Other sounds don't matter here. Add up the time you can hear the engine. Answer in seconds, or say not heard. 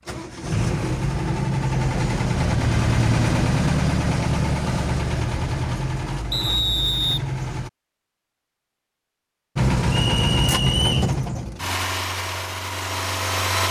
12 s.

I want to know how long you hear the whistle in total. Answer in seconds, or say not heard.
3 s.